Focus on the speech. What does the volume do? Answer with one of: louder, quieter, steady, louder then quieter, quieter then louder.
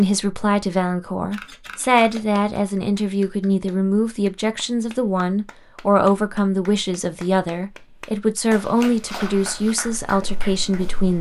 steady.